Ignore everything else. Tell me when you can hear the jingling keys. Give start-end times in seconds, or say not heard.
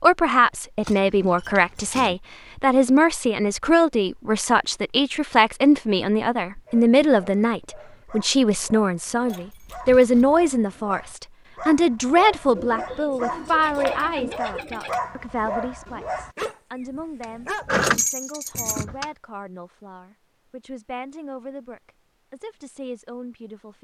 0.8-2.1, 9.2-10.4, 17.2-19.1.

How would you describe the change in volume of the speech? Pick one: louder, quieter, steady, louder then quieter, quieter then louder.
quieter.